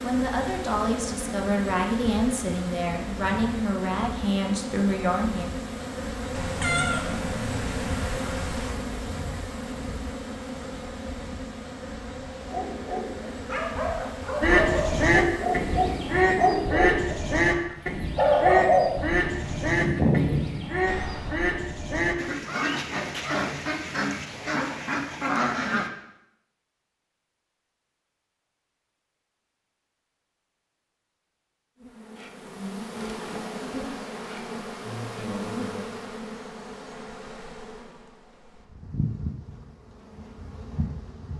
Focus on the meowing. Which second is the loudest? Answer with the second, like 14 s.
7 s.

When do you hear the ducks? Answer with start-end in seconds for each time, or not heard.
14.4-25.9.